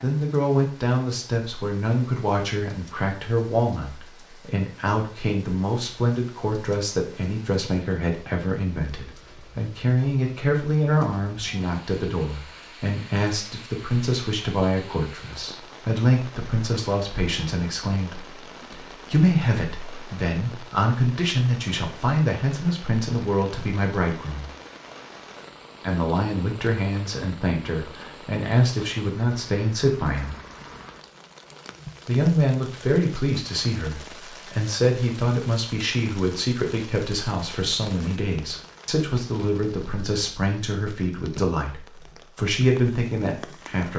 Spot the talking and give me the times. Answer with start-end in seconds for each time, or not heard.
0.0-24.5, 25.8-30.4, 32.0-43.9.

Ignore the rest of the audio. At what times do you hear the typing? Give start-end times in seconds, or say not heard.
not heard.